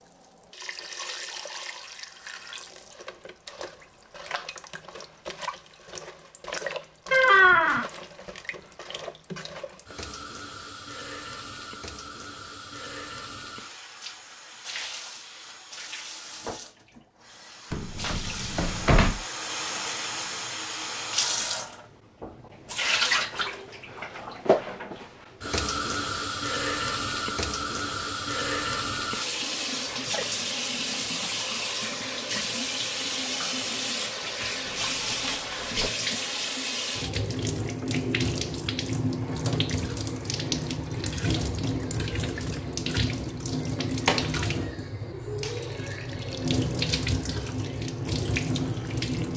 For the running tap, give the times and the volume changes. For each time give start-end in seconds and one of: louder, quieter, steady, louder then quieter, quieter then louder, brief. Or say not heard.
0.0-49.3 louder.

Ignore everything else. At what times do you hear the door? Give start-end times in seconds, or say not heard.
7.1-7.9, 17.7-19.2, 34.6-35.9.